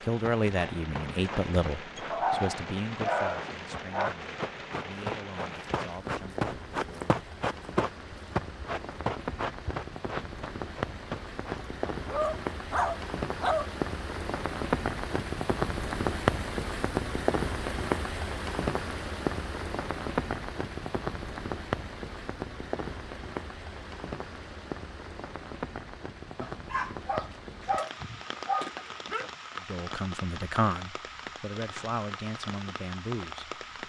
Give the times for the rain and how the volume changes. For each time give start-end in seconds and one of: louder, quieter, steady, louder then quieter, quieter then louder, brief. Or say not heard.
0.0-33.8 louder then quieter.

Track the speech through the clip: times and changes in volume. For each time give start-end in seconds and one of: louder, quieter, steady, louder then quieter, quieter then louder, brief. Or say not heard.
0.0-7.2 quieter
29.6-33.8 quieter.